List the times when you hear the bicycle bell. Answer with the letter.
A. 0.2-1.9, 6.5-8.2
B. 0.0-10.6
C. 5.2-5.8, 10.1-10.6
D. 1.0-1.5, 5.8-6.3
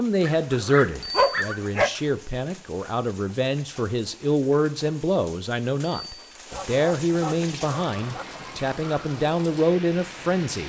D.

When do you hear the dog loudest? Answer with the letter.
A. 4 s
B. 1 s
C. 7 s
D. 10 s
B.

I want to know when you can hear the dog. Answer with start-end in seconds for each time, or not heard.
0.2-1.9, 6.5-8.2.